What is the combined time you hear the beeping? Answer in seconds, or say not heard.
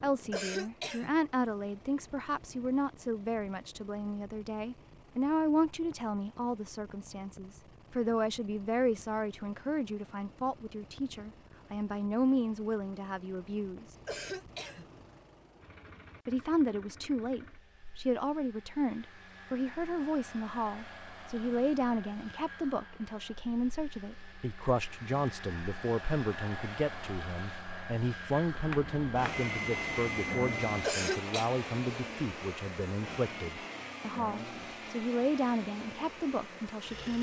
2 s.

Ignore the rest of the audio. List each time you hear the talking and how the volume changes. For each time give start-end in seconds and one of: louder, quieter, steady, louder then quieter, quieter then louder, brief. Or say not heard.
0.0-13.8 steady
16.2-37.1 steady.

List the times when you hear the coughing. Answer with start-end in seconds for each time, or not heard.
0.3-1.1, 14.1-14.9, 30.8-31.5.